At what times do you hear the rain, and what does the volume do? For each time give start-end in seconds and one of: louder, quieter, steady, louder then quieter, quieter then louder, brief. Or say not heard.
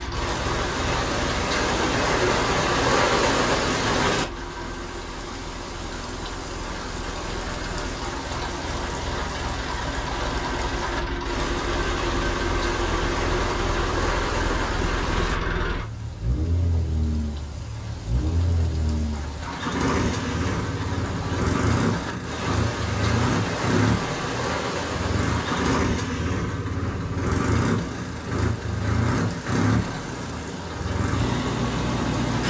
0.0-32.4 quieter.